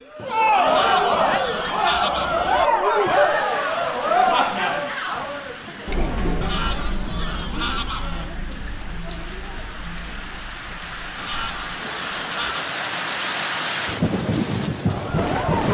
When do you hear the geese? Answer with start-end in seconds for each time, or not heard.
0.7-2.7, 6.4-8.3, 11.2-12.7.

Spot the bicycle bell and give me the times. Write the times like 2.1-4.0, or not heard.
not heard.